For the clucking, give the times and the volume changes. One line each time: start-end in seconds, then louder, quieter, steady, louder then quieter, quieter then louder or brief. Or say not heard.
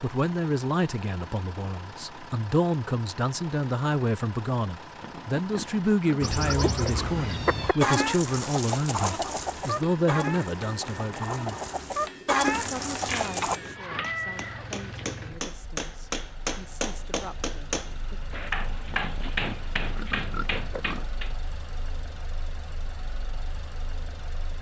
6.2-13.6 quieter then louder.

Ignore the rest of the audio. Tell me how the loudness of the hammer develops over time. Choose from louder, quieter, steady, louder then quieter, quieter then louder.
louder.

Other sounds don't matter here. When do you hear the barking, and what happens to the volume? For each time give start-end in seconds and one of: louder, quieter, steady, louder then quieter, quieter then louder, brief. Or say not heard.
not heard.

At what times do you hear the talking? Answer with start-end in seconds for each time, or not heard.
0.0-11.6, 12.6-18.2.